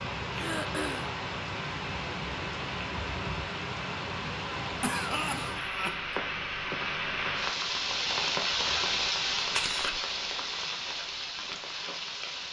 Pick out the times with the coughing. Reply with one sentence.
You can hear the coughing from 0.3 to 1.1 s, from 4.8 to 6.0 s and from 9.3 to 10.0 s.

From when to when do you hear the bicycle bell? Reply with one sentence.
You can't hear the bicycle bell here.